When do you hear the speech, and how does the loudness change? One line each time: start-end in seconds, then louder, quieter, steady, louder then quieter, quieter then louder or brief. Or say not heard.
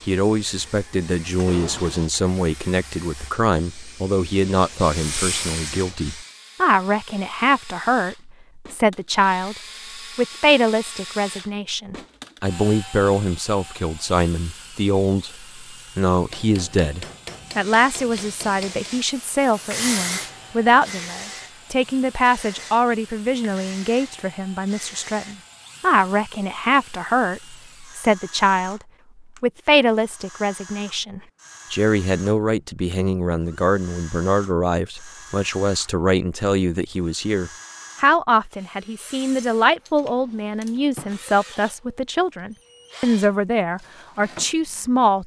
0.1-9.6 steady
10.2-28.8 steady
29.4-45.2 steady.